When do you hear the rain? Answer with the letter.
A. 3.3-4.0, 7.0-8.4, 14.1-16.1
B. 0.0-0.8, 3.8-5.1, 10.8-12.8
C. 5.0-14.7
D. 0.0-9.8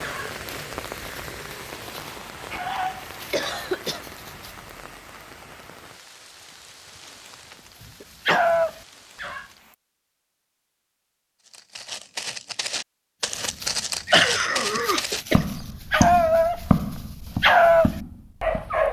D.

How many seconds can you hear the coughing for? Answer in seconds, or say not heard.
4 s.